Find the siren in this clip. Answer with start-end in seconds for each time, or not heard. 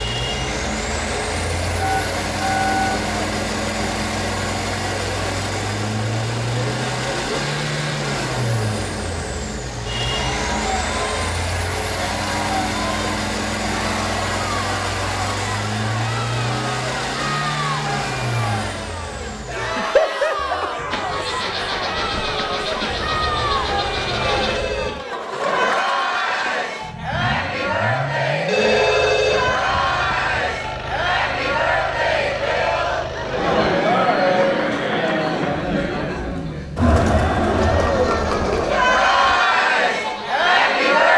not heard.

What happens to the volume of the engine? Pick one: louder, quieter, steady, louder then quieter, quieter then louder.
quieter.